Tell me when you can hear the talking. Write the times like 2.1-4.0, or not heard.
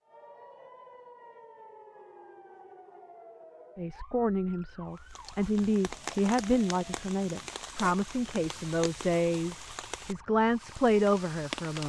3.8-11.8.